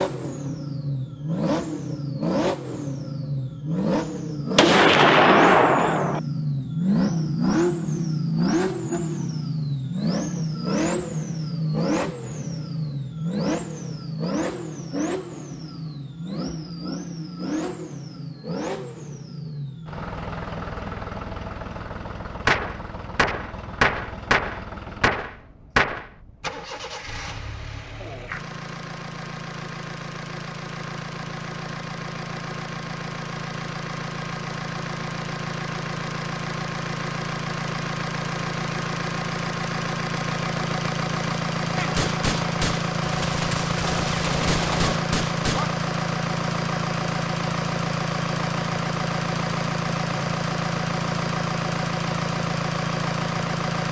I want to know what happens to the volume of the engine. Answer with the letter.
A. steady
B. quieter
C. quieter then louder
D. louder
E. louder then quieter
C.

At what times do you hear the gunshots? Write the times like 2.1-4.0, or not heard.
4.5-6.2, 22.4-26.1, 41.8-45.8.